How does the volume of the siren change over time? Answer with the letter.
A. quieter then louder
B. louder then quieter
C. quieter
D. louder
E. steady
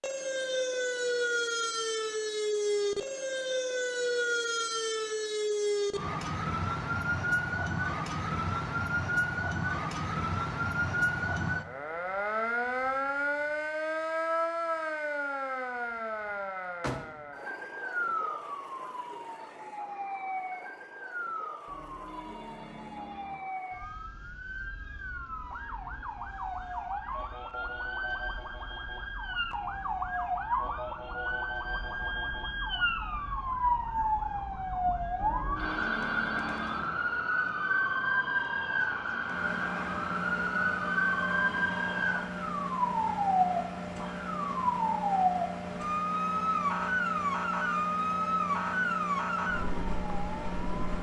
A.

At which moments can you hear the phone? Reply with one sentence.
The phone can be heard from 21.6 to 23.4 s and from 35.1 to 36.9 s.